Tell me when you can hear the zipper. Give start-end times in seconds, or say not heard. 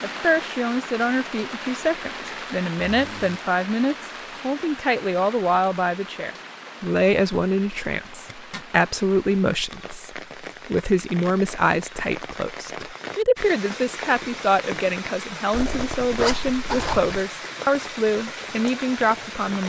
2.8-3.5, 7.8-8.7, 15.5-17.1.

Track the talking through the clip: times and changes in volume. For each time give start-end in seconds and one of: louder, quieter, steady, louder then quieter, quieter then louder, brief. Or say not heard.
0.0-19.6 steady.